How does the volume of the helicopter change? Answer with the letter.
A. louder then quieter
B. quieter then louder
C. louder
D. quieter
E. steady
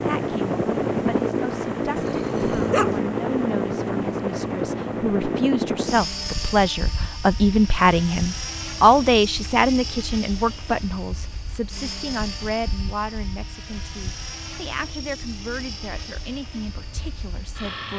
D.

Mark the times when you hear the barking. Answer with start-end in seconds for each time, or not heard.
1.9-3.0.